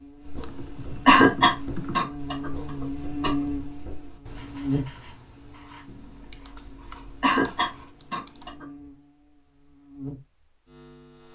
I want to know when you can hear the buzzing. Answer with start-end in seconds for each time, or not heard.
0.0-11.3.